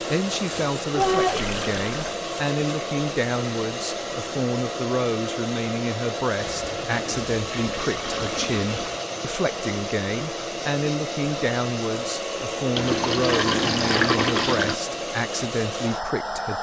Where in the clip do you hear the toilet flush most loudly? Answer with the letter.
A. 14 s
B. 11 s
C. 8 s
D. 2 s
A.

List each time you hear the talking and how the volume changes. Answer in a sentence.
The talking can be heard from 0.0 to 16.5 s, at a steady volume.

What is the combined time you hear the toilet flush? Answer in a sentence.
You can hear the toilet flush for 6 seconds altogether.